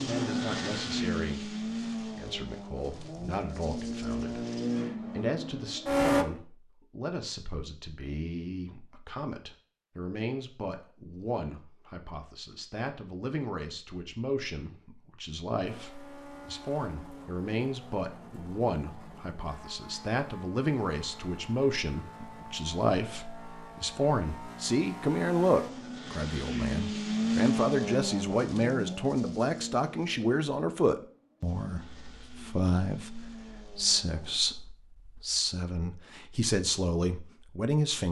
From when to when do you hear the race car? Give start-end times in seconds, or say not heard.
0.0-6.2, 15.7-34.4.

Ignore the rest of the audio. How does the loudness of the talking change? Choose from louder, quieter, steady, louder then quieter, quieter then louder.
louder.